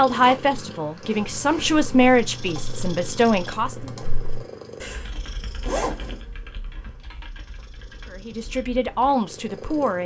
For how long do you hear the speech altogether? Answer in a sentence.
The speech can be heard for 6 seconds in total.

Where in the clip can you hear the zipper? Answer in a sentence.
You can hear the zipper from 0.1 to 0.6 s and from 5.6 to 6.2 s.